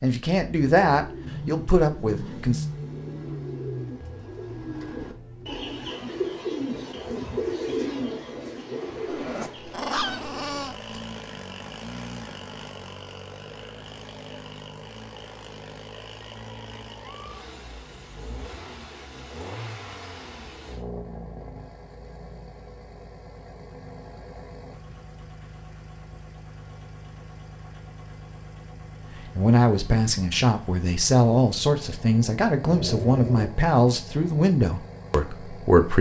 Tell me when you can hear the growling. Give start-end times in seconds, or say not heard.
9.1-11.0, 32.7-33.5.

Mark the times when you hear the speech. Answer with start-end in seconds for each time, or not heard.
0.0-2.6, 29.4-35.9.